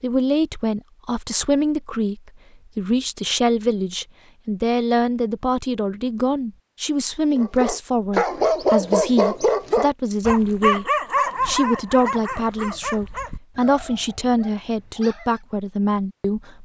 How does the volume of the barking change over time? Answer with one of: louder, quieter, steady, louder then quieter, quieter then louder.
quieter.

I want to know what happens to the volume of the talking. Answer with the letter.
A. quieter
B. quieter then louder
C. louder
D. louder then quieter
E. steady
E.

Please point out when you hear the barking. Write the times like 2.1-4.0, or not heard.
7.3-15.4.